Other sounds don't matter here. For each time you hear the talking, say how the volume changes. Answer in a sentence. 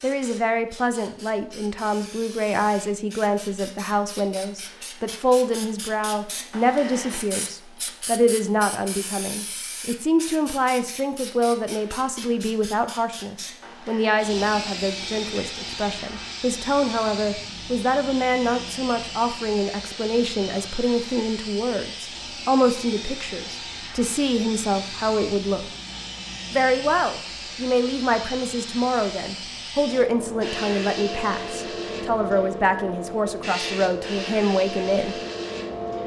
You can hear the talking from 0.0 to 25.6 s, at a steady volume; and from 26.5 to 35.2 s, at a steady volume.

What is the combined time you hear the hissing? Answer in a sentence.
The hissing can be heard for 36 seconds in total.